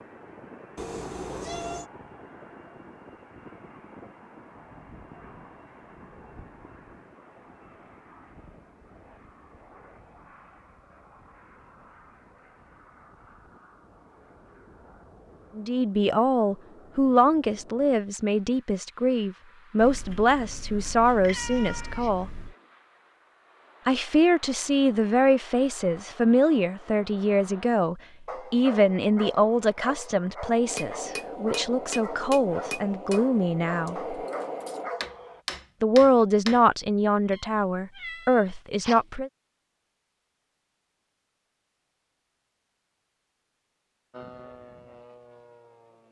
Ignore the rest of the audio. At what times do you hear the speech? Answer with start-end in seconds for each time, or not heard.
15.6-22.3, 23.9-34.1, 35.8-39.3.